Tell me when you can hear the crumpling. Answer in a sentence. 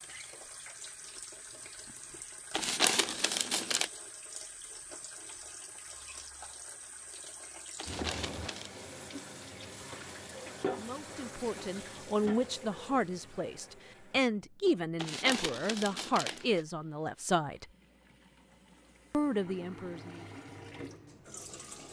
You can hear the crumpling from 2.5 to 3.9 s, from 7.8 to 8.8 s and from 14.9 to 16.6 s.